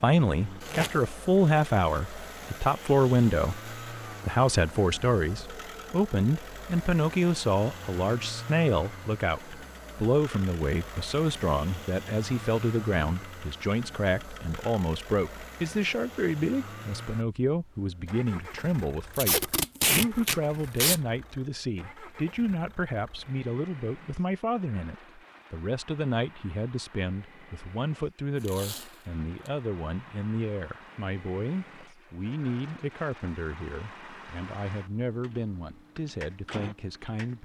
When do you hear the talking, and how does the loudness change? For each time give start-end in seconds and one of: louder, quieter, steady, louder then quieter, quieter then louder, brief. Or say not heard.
0.0-37.4 quieter.